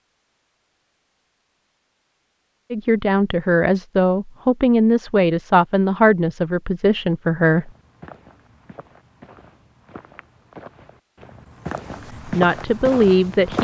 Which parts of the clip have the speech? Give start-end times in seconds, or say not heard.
2.7-7.7, 12.2-13.5.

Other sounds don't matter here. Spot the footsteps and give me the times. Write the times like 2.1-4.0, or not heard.
7.5-13.5.